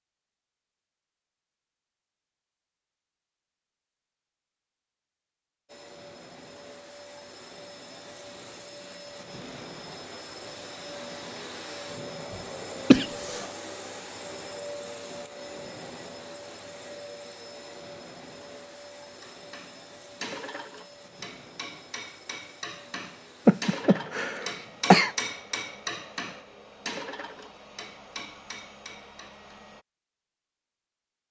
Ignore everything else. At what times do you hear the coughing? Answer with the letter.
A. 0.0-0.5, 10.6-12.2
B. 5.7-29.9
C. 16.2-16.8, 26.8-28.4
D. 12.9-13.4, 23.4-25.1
D.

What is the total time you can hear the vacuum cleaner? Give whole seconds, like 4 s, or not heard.
24 s.